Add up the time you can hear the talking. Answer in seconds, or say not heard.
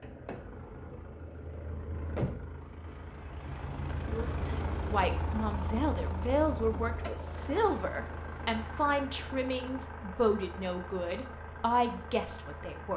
9 s.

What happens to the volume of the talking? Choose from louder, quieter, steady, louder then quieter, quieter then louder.
steady.